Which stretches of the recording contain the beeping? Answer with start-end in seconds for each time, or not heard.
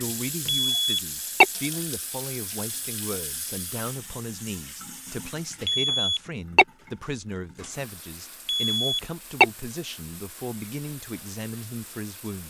0.5-1.4, 5.7-6.7, 8.4-9.4.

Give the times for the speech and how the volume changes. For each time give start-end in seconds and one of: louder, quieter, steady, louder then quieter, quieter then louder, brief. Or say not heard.
0.0-12.4 steady.